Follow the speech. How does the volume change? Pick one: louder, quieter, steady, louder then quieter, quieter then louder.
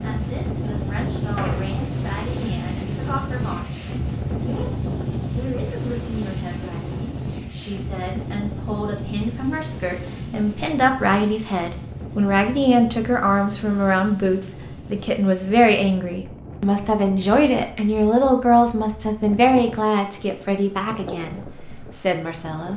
louder.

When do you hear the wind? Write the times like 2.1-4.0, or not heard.
0.0-22.7.